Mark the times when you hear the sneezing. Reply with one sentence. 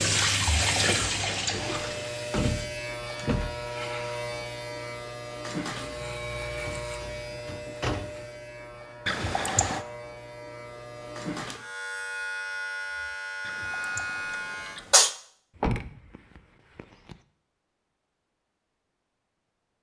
The sneezing can be heard from 1.0 to 2.0 s, from 9.1 to 9.8 s and from 13.4 to 15.1 s.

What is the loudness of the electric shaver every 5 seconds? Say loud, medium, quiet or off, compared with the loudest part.
loud, loud, loud, off.